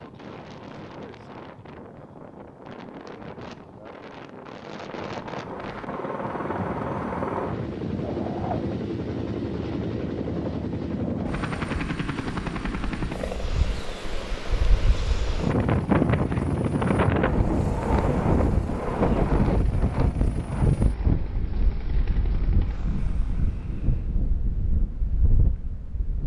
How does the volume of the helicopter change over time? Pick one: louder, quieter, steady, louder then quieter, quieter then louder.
quieter.